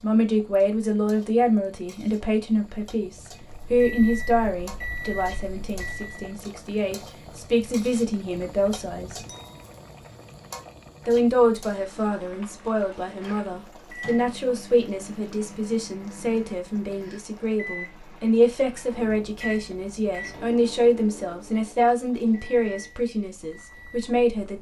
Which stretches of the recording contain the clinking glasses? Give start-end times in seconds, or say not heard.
9.2-9.7.